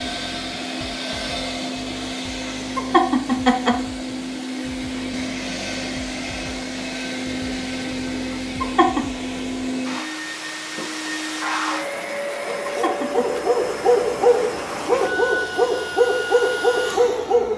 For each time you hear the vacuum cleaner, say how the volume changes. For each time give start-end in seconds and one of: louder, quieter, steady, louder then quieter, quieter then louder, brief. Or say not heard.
0.0-17.5 steady.